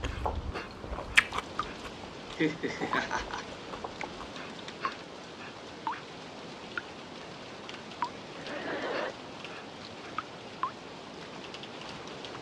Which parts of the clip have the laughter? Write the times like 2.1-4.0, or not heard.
2.4-3.5, 8.3-9.2.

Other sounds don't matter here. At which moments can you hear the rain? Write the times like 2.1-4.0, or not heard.
0.0-12.3.